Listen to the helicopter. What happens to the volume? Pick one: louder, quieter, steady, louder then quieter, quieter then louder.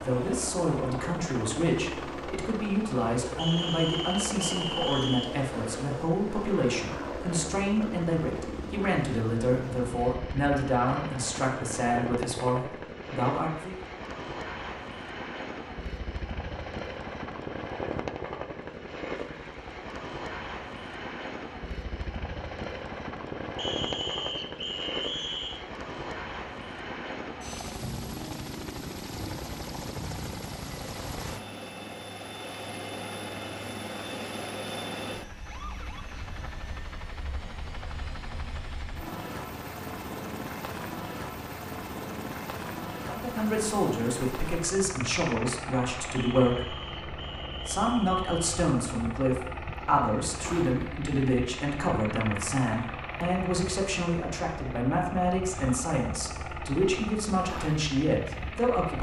steady.